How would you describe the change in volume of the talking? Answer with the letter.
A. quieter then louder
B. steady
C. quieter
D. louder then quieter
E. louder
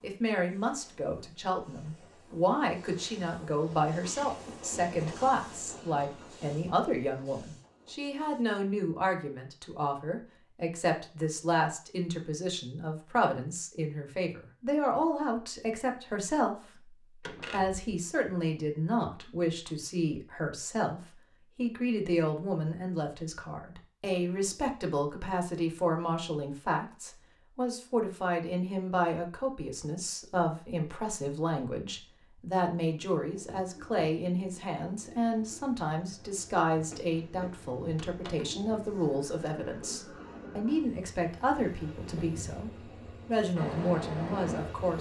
B.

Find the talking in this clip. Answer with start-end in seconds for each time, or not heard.
0.0-44.9.